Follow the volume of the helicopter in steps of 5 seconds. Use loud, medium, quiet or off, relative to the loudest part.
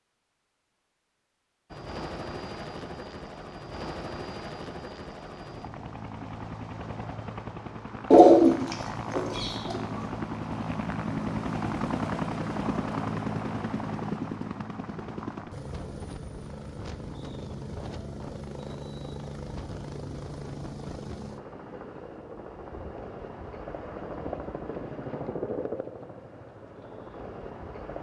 medium, medium, loud, medium, medium, medium.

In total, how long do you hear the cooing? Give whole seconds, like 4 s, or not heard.
2 s.